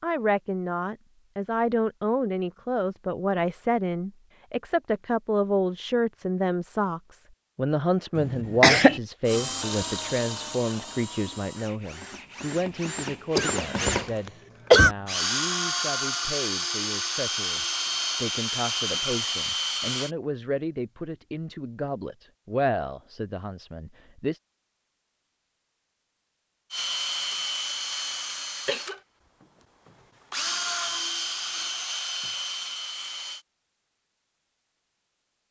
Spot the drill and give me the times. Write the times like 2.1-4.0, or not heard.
9.2-20.1, 26.7-33.5.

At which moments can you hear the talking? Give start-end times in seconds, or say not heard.
0.0-24.4.